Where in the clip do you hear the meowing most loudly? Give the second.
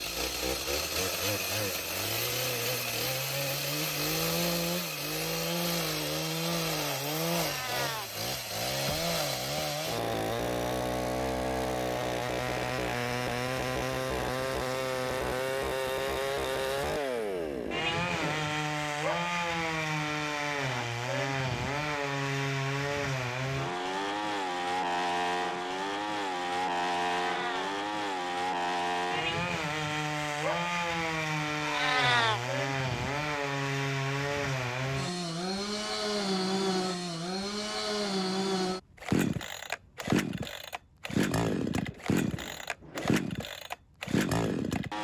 32 s.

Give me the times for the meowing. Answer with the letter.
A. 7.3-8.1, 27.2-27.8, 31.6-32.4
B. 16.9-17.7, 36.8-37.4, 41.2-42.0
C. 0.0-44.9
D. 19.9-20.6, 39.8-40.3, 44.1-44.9
A.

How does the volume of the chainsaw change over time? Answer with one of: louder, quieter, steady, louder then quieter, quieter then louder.
steady.